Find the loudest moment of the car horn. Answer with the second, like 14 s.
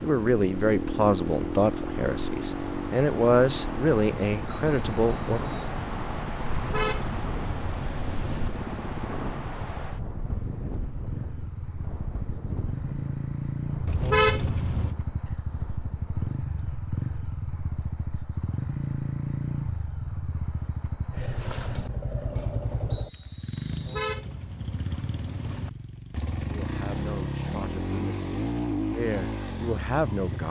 14 s.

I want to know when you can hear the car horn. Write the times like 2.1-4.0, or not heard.
6.5-8.5, 13.8-14.9, 23.7-25.7.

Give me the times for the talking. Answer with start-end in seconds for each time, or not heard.
0.0-5.4, 26.5-30.4.